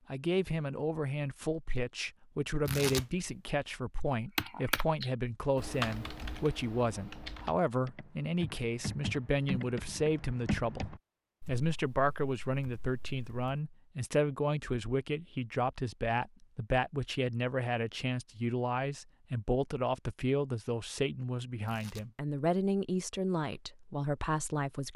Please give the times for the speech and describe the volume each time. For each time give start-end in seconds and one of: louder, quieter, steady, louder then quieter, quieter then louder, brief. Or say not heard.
0.1-24.9 steady.